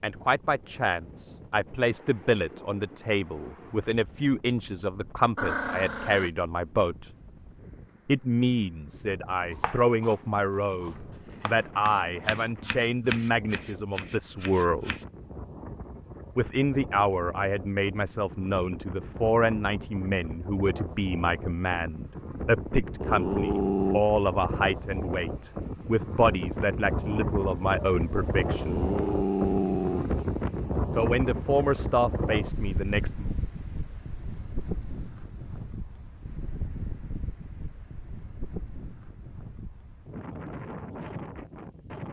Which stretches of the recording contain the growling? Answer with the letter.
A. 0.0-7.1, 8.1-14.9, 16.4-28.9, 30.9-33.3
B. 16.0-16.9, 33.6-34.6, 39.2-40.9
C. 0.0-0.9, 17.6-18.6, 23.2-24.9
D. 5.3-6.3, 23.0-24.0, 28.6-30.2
D.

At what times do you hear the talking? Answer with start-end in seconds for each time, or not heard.
0.0-7.1, 8.1-14.9, 16.4-28.9, 30.9-33.3.